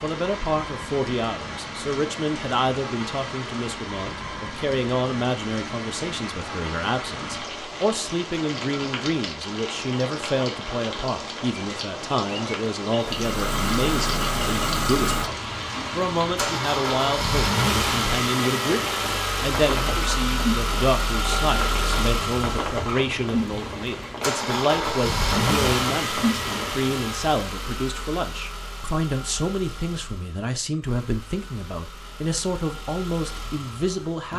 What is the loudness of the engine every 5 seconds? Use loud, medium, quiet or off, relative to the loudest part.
off, off, loud, loud, loud, loud, quiet.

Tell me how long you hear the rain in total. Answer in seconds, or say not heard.
27 s.